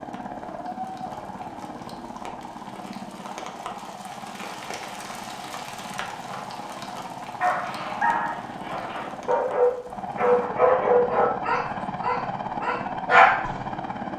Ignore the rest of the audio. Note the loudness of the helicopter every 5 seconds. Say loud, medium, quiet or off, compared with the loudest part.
medium, medium, loud.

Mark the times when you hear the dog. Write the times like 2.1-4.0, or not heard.
7.4-13.6.